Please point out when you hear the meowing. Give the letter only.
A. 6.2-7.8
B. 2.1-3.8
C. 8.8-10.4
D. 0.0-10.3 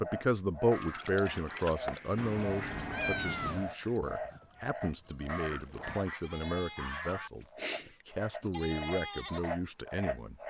B.